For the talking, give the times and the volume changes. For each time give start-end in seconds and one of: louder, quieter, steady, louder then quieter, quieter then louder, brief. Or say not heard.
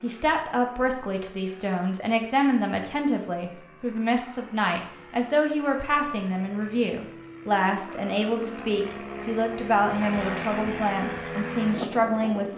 0.0-12.5 steady.